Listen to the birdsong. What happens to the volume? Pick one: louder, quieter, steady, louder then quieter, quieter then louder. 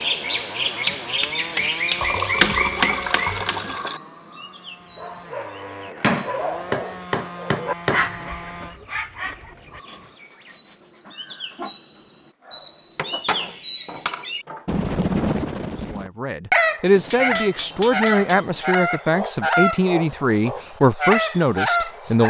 quieter then louder.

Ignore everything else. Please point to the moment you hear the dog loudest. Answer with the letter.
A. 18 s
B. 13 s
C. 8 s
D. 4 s
C.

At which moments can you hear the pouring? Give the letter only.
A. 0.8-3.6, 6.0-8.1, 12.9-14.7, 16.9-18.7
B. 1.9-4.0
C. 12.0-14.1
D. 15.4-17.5
B.